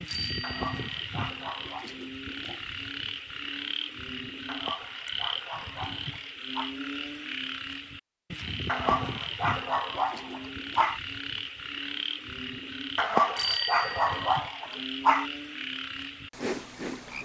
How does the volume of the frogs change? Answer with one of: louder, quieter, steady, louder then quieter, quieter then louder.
steady.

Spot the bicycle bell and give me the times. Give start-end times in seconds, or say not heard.
0.1-1.0, 13.3-14.3.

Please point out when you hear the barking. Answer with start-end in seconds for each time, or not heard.
0.4-1.9, 4.5-6.8, 8.7-11.0, 12.9-15.2.